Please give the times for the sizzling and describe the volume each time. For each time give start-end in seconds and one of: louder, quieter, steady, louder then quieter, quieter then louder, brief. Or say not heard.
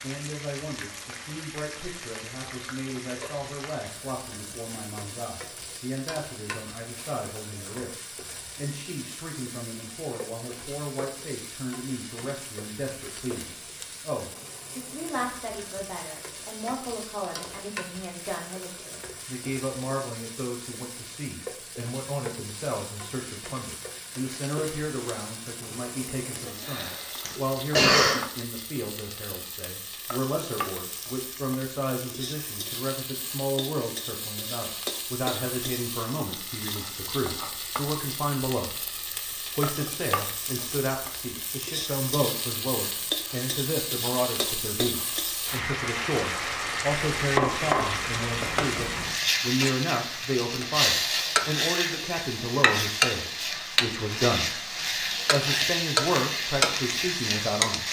0.0-57.8 louder.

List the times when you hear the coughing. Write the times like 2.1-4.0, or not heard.
26.6-28.2.